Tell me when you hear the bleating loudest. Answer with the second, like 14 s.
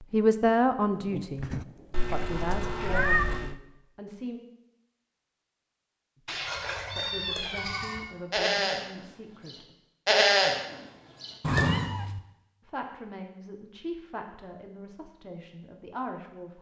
10 s.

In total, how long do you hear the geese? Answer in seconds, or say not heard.
not heard.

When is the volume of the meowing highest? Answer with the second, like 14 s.
3 s.